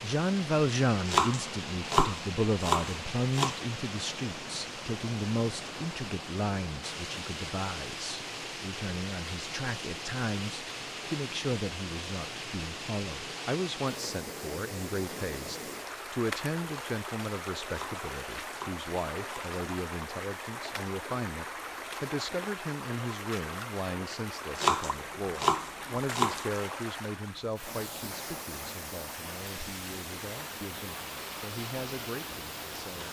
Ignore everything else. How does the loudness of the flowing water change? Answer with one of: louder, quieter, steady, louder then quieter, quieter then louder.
steady.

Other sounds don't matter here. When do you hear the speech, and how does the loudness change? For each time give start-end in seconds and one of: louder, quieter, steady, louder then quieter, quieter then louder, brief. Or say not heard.
0.0-33.0 quieter.